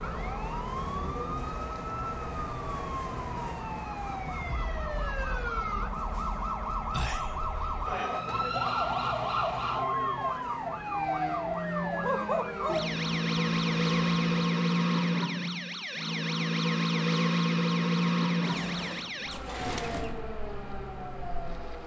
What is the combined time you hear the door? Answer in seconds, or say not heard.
2 s.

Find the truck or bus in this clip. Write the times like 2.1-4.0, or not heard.
0.0-14.2.